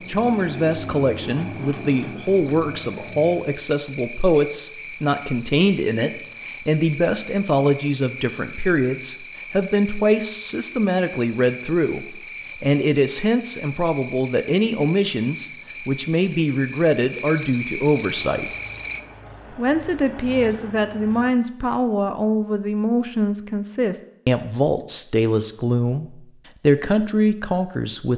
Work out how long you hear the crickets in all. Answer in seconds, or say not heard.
19 s.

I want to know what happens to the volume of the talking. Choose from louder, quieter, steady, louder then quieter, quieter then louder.
steady.